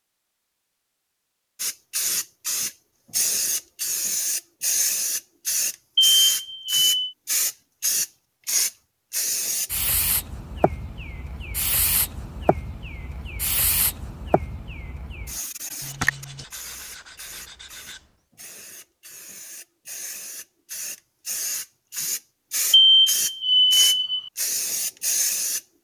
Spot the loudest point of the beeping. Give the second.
23 s.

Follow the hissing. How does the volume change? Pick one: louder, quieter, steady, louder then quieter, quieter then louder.
quieter then louder.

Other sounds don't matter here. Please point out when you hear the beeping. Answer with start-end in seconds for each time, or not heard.
6.0-7.1, 22.7-24.3.